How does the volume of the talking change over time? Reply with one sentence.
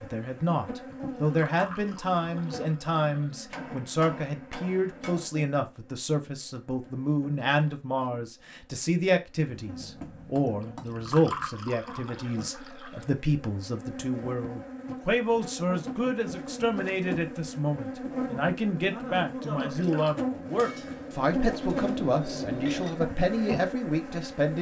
The volume of the talking stays about the same.